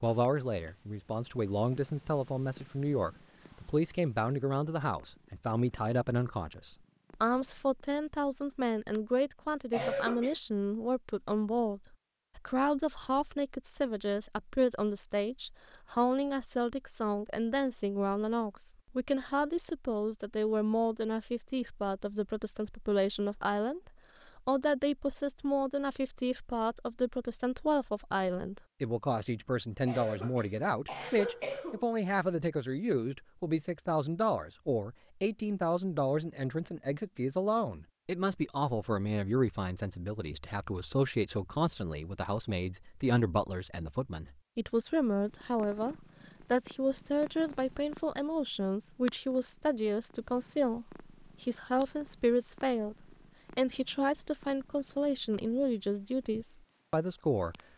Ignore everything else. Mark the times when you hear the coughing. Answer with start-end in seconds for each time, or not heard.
9.7-10.3, 29.9-31.9.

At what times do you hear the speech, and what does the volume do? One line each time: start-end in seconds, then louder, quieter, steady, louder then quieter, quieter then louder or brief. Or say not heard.
0.0-57.5 steady.